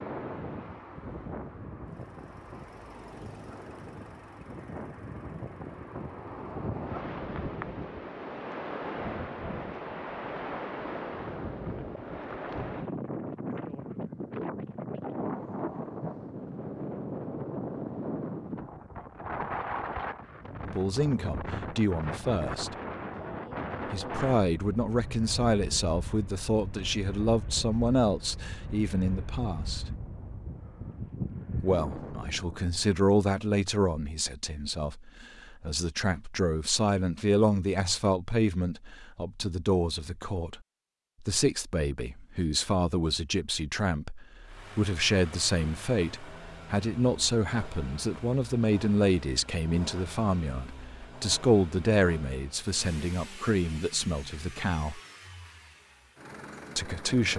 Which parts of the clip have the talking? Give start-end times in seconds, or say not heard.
20.6-22.8, 23.9-29.9, 31.6-40.6, 41.2-55.0, 56.8-57.3.